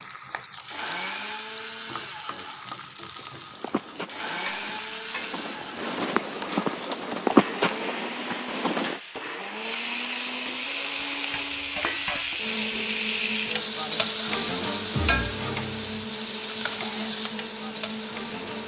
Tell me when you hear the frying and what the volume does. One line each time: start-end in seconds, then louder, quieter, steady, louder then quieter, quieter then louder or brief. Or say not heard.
0.0-18.6 louder.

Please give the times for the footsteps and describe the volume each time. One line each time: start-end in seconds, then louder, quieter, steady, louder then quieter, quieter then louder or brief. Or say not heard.
3.5-9.0 louder then quieter.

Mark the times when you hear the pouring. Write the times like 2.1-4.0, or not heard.
not heard.